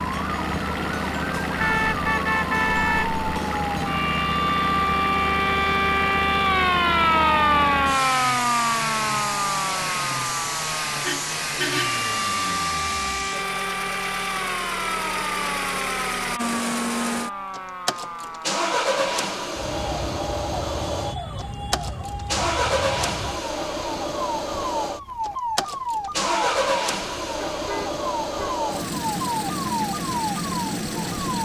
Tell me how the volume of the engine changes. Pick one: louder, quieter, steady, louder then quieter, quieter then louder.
steady.